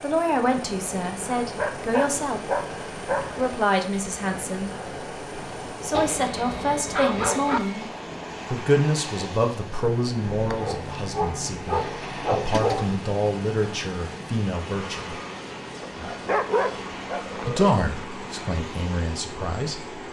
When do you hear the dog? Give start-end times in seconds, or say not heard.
1.4-3.5, 5.9-7.6, 10.4-13.0, 15.8-17.8.